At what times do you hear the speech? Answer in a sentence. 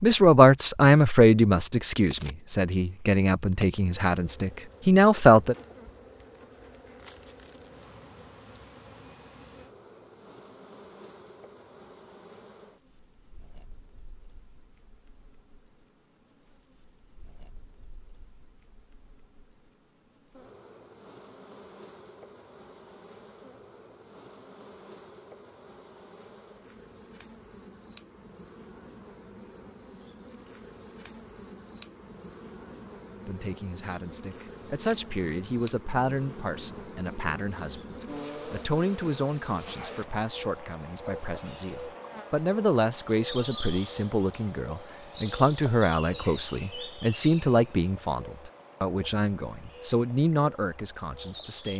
You can hear the speech from 0.0 to 5.5 s and from 33.2 to 51.7 s.